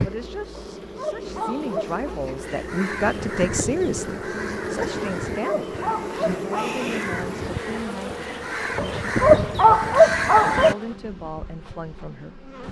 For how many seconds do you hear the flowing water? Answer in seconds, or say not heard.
not heard.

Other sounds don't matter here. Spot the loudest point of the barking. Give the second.
10 s.